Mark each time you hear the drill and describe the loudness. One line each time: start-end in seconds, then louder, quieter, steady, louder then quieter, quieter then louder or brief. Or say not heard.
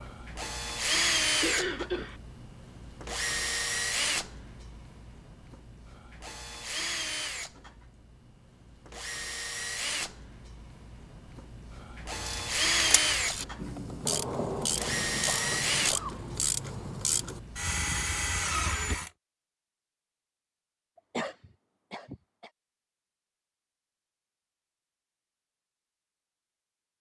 0.0-19.1 quieter then louder.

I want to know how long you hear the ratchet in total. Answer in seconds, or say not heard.
5 s.